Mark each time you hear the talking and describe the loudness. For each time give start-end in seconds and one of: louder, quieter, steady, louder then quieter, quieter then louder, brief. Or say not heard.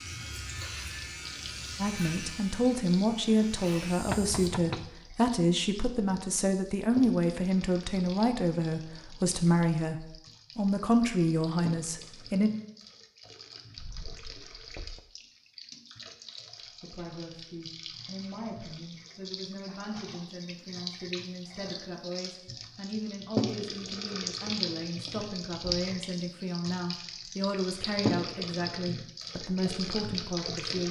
1.8-12.5 steady
16.8-30.8 louder.